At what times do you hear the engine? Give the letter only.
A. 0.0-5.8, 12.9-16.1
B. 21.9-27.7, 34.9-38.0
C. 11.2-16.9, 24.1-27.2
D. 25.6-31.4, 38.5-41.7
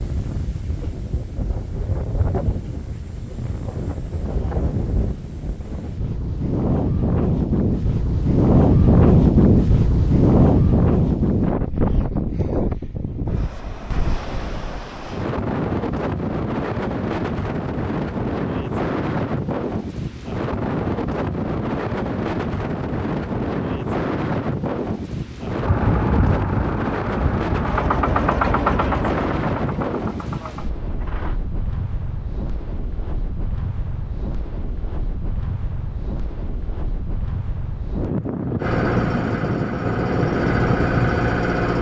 D.